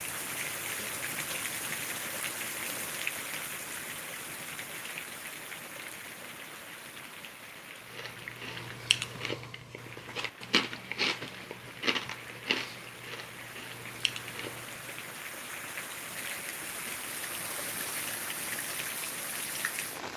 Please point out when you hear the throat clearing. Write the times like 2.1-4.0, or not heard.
0.3-0.9.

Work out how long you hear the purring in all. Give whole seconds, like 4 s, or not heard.
not heard.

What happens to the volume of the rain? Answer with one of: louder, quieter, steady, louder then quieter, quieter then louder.
quieter then louder.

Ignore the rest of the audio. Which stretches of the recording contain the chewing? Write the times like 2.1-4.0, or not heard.
7.9-15.1.